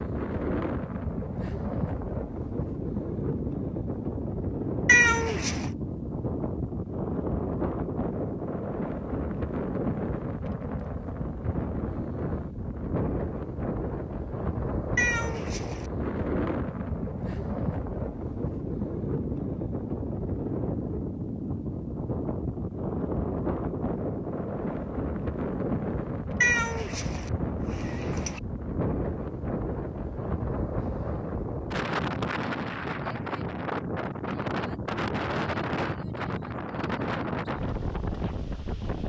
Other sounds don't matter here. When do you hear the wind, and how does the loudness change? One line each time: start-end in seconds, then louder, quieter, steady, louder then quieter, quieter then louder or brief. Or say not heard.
0.0-39.0 steady.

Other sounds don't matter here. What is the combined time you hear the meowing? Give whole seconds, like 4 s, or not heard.
4 s.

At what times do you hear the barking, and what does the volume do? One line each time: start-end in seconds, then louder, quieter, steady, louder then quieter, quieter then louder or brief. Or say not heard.
not heard.